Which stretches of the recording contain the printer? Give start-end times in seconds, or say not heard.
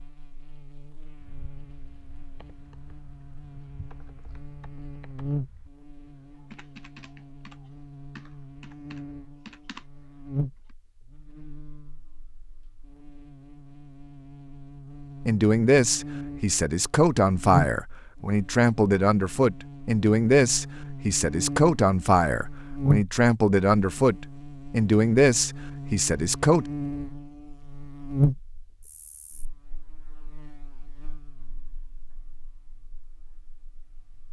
not heard.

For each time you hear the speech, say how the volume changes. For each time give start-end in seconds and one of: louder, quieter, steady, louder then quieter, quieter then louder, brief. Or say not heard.
15.2-26.6 steady.